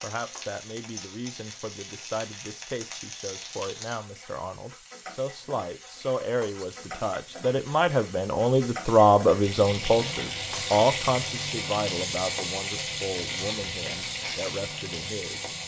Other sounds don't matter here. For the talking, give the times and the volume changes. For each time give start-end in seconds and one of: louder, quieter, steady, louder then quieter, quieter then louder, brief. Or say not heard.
0.0-15.5 louder then quieter.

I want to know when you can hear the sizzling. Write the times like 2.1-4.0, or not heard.
0.0-15.6.